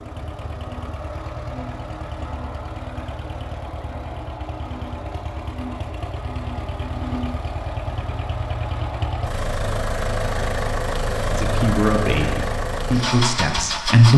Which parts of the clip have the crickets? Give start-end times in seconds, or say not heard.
not heard.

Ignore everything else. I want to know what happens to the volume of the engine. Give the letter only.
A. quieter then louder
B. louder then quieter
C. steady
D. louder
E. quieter
D.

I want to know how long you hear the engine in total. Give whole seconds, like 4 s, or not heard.
14 s.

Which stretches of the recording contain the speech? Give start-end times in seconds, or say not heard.
11.3-14.1.